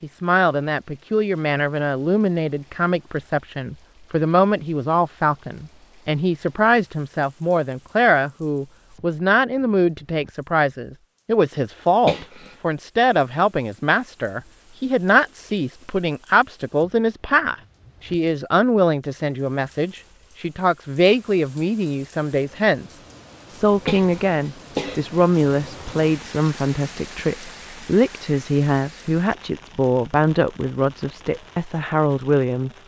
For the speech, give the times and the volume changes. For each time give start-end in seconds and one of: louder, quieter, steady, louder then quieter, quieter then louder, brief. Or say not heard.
0.0-32.7 steady.